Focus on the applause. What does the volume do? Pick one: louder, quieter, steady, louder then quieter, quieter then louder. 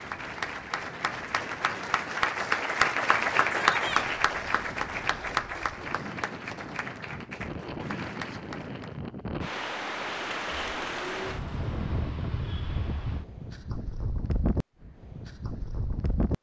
louder then quieter.